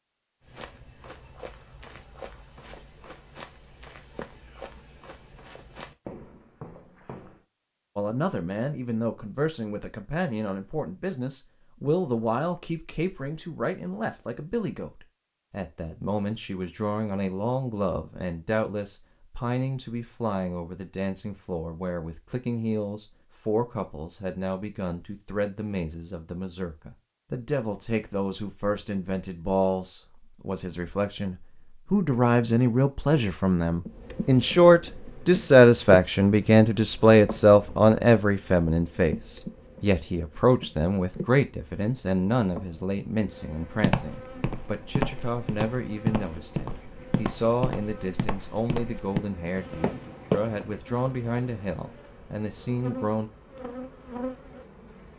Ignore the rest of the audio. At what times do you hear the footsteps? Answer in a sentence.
You can hear the footsteps from 0.4 to 7.4 s and from 43.8 to 50.6 s.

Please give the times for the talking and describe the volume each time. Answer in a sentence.
The talking can be heard from 8.0 to 53.3 s, getting louder then quieter.